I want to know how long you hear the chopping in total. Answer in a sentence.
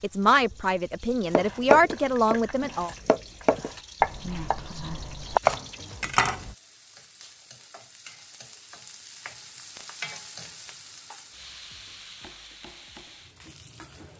You can hear the chopping for 5 seconds altogether.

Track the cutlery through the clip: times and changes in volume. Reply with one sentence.
You can't hear the cutlery here.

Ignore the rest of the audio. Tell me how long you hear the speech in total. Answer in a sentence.
You can hear the speech for 3 seconds altogether.